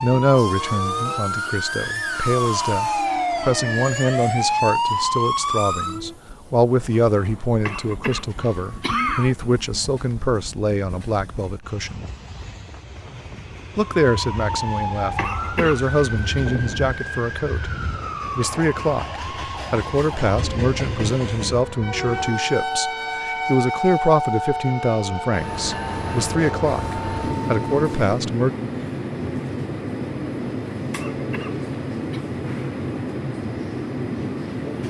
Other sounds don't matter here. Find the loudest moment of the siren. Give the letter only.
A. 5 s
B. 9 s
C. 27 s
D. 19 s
A.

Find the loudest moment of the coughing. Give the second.
9 s.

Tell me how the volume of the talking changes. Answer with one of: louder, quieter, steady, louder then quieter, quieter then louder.
steady.